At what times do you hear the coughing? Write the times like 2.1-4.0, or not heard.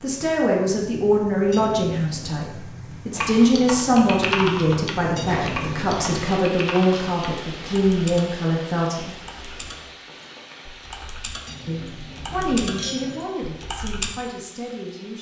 not heard.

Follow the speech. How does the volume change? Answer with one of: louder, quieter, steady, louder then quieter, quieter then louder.
quieter.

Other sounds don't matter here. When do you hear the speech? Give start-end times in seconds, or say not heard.
0.0-9.2, 11.6-15.1.